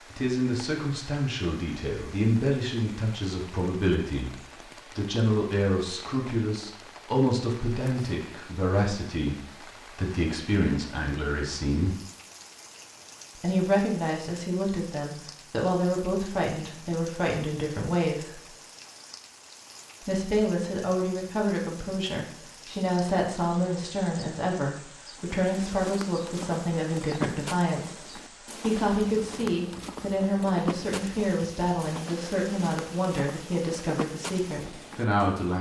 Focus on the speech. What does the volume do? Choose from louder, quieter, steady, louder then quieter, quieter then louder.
steady.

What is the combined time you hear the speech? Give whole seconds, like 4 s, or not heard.
32 s.